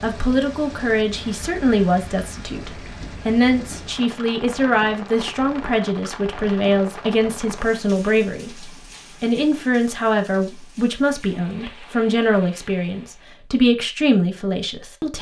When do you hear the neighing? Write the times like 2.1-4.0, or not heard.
not heard.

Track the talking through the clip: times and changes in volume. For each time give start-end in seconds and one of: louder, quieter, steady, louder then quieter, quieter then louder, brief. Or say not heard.
0.0-15.1 steady.